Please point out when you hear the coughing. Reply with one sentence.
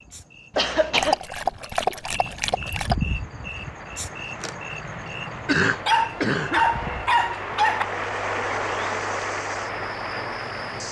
You can hear the coughing from 0.6 to 1.2 s and from 5.5 to 6.7 s.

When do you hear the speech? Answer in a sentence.
You can't hear the speech here.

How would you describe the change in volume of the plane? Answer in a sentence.
The volume of the plane goes up.